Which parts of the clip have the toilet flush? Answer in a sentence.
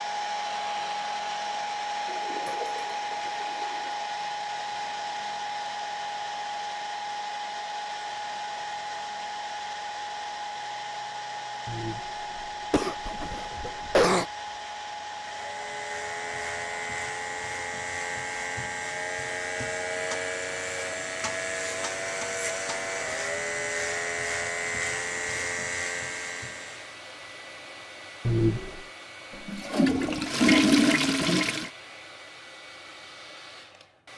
You can hear the toilet flush from 2.0 to 4.0 s and from 29.3 to 31.7 s.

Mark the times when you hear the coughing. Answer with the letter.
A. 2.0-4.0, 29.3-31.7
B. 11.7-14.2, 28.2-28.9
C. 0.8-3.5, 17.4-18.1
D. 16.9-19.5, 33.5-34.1
B.